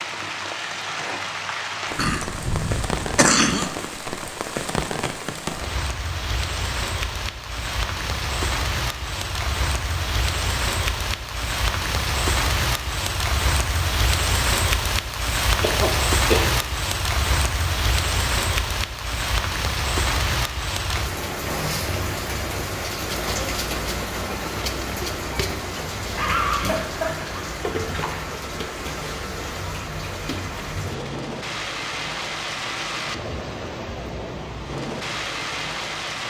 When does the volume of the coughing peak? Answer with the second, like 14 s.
3 s.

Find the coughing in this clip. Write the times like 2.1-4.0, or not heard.
1.9-3.7, 15.6-16.4, 26.1-28.1.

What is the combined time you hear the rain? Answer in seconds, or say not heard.
36 s.